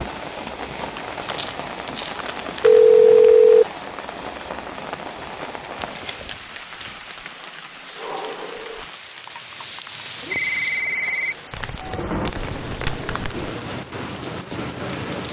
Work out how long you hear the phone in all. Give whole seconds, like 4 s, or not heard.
3 s.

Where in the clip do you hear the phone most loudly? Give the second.
3 s.